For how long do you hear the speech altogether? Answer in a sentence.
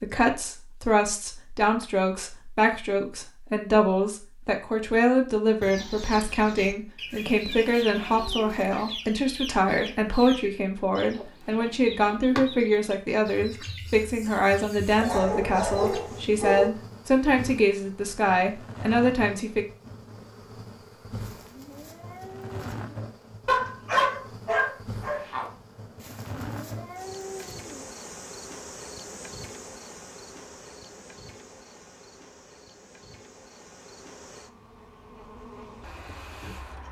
The speech can be heard for 20 seconds in total.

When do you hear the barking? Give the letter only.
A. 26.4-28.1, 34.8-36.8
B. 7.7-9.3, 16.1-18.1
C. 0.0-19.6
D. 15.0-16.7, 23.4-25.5
D.